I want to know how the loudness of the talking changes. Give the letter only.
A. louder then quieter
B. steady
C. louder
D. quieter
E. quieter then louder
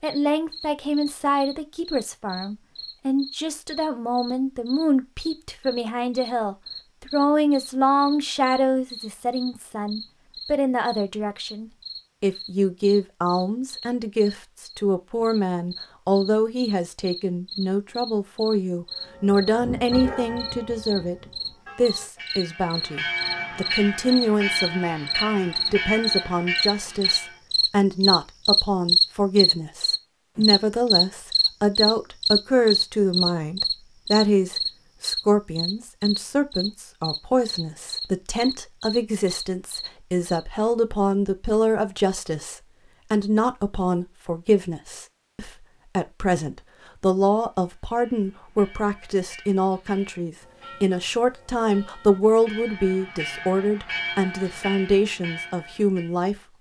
B.